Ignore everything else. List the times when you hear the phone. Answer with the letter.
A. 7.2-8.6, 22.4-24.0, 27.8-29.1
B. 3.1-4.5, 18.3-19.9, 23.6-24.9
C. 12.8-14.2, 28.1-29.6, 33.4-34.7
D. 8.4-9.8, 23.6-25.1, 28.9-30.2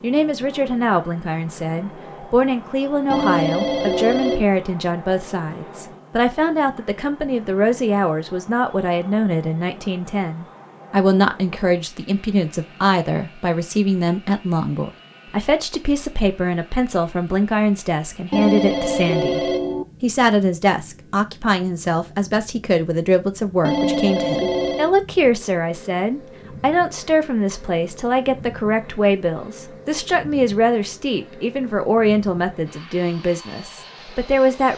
B.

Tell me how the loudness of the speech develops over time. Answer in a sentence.
The volume of the speech stays about the same.